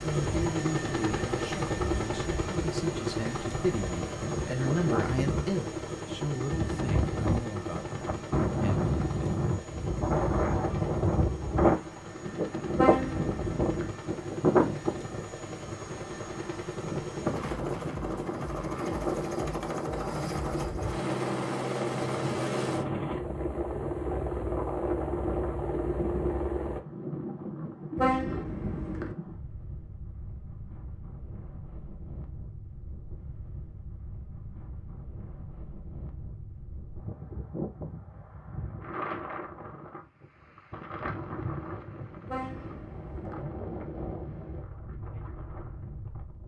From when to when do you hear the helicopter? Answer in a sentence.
The helicopter can be heard from 0.0 to 26.8 s.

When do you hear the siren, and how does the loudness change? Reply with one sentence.
The siren can't be heard in this clip.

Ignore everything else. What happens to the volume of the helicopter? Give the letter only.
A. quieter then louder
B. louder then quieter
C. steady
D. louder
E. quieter
A.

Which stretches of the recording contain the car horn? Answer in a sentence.
The car horn can be heard from 12.8 to 13.9 s, from 27.9 to 29.1 s and from 42.2 to 43.5 s.